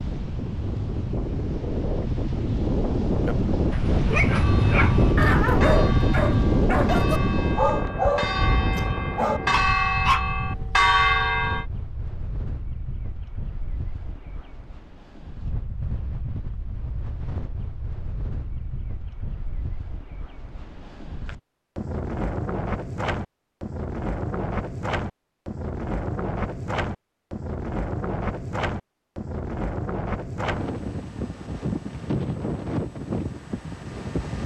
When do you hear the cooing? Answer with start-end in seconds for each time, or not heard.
not heard.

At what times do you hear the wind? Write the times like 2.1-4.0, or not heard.
0.0-34.4.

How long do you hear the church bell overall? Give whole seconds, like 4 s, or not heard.
7 s.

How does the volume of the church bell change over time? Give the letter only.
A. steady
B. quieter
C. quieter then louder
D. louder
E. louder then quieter
D.